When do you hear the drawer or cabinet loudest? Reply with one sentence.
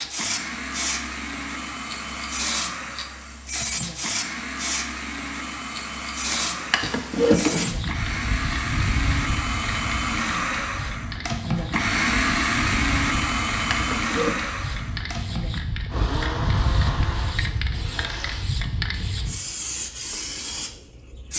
The loudest moment of the drawer or cabinet is at 7 seconds.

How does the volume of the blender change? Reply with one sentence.
The volume of the blender goes up, then down.